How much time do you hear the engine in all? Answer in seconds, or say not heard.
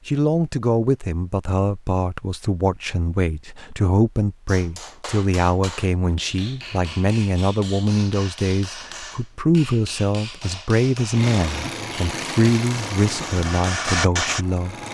4 s.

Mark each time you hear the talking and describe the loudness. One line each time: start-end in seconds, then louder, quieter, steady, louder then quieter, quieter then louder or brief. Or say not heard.
0.1-14.8 steady.